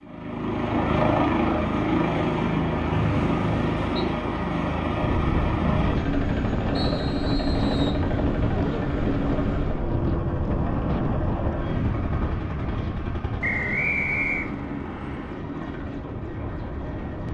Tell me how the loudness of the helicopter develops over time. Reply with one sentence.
The loudness of the helicopter goes down.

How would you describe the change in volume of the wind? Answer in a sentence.
The volume of the wind goes down.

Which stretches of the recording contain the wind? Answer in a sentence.
The wind can be heard from 5.0 to 17.3 s.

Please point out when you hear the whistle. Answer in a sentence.
You can hear the whistle from 2.9 to 3.9 s, from 6.7 to 8.1 s and from 13.4 to 14.5 s.